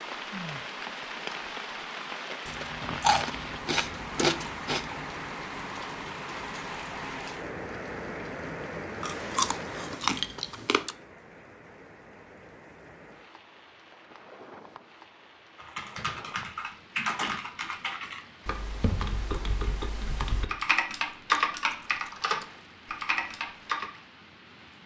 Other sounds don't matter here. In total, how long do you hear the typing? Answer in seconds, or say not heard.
8 s.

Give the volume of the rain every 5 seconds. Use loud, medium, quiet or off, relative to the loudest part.
loud, loud, quiet, quiet, quiet.